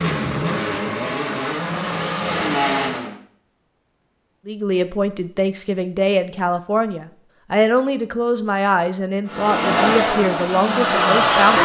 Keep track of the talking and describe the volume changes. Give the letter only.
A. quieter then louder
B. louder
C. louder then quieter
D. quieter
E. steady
E.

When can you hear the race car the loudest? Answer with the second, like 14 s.
11 s.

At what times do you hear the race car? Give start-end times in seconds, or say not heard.
0.0-3.1, 9.2-11.6.